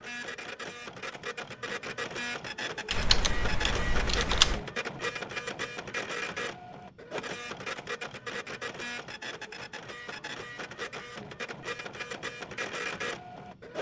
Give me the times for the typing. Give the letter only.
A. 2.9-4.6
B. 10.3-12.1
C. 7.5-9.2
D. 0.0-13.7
A.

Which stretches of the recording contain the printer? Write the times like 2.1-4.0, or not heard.
0.0-13.7.